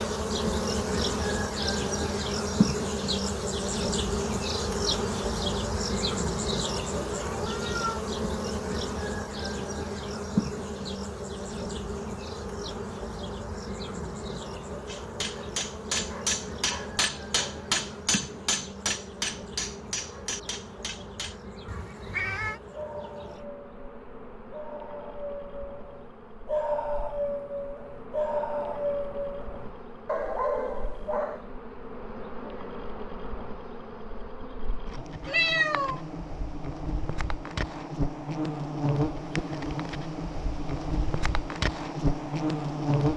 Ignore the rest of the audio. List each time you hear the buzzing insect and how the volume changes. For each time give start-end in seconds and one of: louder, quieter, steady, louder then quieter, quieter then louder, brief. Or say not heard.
0.0-43.1 quieter then louder.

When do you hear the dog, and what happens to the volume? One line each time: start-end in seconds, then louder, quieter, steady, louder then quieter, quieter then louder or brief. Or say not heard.
22.7-31.4 louder.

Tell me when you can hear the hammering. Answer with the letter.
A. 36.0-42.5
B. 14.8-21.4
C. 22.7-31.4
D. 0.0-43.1
B.